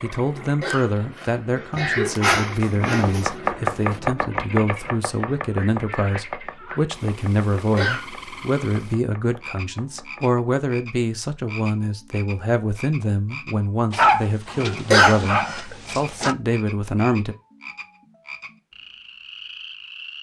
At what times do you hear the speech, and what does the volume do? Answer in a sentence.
The speech can be heard from 0.0 to 17.4 s, at a steady volume.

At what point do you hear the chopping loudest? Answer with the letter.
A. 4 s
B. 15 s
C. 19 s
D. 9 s
A.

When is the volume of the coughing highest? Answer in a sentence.
The loudest moment of the coughing is at 15 seconds.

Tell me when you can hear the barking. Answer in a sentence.
The barking can be heard from 1.7 to 3.3 s and from 13.9 to 16.4 s.